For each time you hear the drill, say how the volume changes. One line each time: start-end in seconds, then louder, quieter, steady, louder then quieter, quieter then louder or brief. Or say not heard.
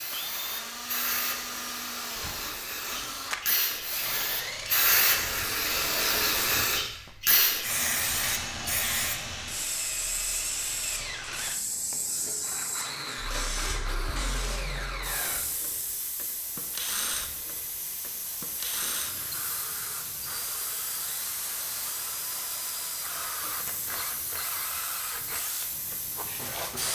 0.1-26.9 steady.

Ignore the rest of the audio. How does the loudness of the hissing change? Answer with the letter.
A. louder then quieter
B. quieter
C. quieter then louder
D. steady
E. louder
B.